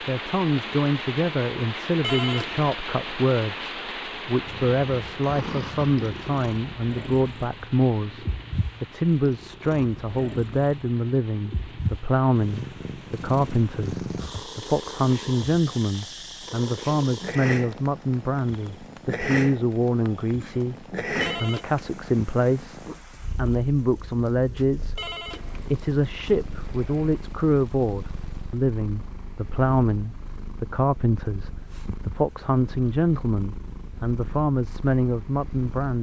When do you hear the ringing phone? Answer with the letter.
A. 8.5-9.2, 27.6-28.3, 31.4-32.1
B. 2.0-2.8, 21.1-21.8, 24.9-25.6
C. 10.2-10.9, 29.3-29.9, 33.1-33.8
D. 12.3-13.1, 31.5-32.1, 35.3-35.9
B.